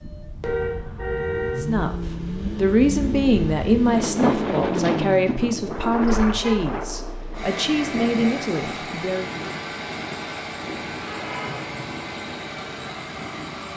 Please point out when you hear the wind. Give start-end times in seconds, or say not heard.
0.0-13.7.